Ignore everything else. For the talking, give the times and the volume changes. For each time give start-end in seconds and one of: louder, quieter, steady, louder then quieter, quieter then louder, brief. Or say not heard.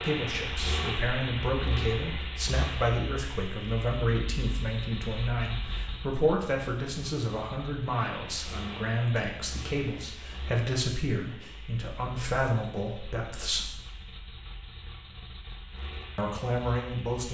0.0-13.7 steady
16.1-17.3 brief.